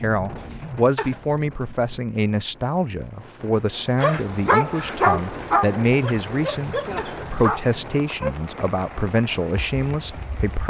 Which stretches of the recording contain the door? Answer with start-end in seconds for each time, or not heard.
not heard.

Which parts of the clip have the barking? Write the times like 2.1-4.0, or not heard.
4.0-8.3.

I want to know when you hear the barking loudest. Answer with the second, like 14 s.
5 s.